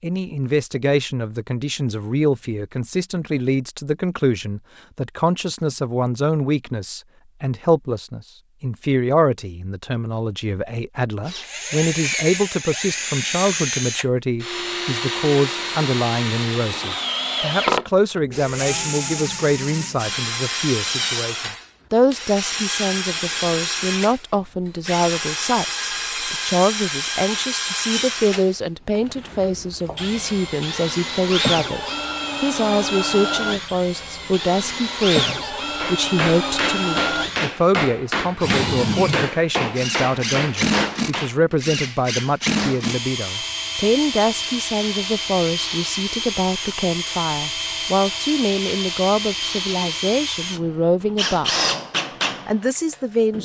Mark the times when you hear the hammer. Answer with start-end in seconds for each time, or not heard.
35.8-41.5.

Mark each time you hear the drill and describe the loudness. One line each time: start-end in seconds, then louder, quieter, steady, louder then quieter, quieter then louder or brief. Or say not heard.
11.2-53.4 steady.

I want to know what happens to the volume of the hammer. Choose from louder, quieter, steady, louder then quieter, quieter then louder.
steady.